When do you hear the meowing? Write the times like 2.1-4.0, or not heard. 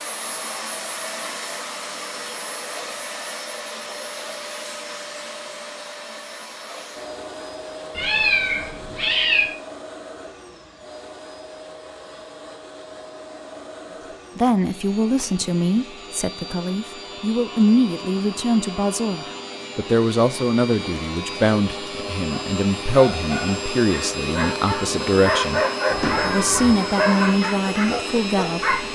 8.0-9.4, 25.9-26.8.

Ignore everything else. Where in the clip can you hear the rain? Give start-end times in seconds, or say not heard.
not heard.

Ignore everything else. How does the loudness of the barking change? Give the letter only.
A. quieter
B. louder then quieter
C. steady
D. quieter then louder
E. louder
B.